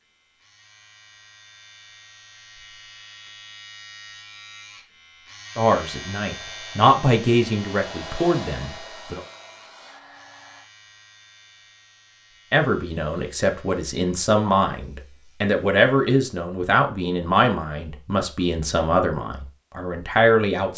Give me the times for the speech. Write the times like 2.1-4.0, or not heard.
5.5-9.2, 12.5-20.7.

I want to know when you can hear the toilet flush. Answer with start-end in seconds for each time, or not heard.
not heard.